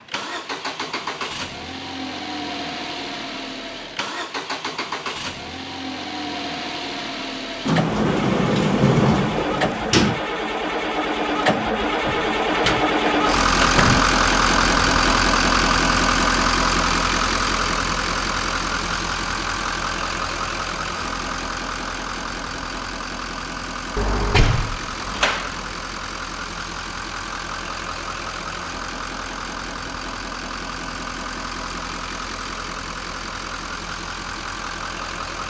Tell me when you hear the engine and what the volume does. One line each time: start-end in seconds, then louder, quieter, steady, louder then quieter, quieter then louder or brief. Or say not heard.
0.0-35.4 louder then quieter.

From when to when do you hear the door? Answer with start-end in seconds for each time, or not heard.
7.7-10.2, 12.1-14.1, 23.9-25.7.